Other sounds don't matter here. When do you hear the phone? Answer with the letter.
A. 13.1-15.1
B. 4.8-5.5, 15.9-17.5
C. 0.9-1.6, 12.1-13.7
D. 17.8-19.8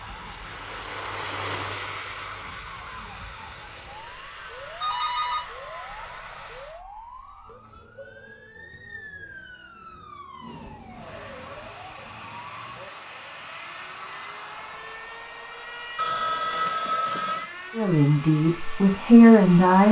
B.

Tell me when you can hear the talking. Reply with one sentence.
You can hear the talking from 17.8 to 19.8 s.